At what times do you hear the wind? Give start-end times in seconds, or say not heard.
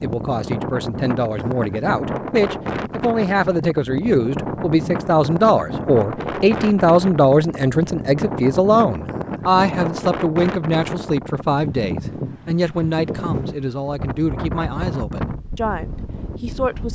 0.0-16.9.